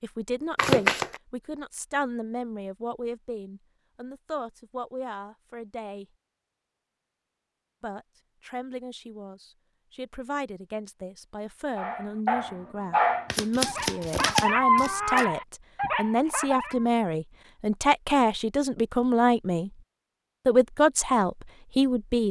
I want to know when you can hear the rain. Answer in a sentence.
You can't hear the rain here.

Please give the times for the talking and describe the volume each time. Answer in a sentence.
You can hear the talking from 0.0 to 6.0 s, getting quieter; from 7.8 to 19.7 s, getting louder; and briefly from 20.4 to 22.2 s.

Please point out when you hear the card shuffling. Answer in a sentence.
You can hear the card shuffling from 0.6 to 1.2 s and from 13.3 to 15.2 s.